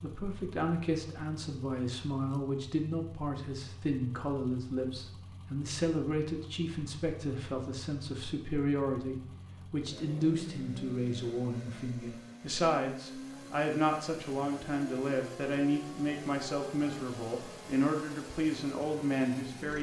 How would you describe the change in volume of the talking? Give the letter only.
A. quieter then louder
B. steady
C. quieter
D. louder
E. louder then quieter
B.